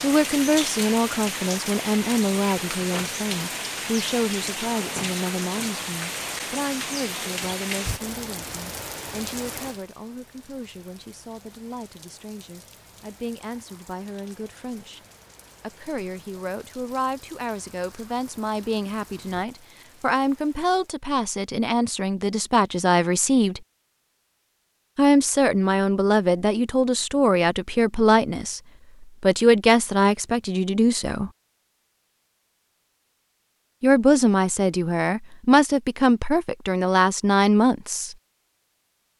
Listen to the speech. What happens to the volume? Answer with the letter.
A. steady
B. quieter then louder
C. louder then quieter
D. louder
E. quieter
B.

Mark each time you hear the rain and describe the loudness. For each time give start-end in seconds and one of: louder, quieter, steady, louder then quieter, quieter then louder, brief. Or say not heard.
0.0-20.9 quieter.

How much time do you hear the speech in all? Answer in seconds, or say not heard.
34 s.